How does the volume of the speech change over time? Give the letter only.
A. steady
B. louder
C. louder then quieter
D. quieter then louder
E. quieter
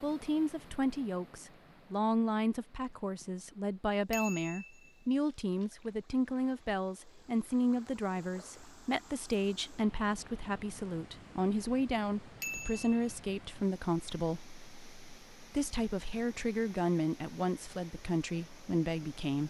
A.